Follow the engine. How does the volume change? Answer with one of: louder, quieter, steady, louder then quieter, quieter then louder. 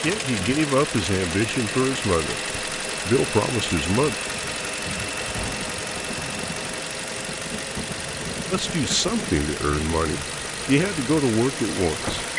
steady.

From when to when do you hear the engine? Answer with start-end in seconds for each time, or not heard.
0.0-12.3.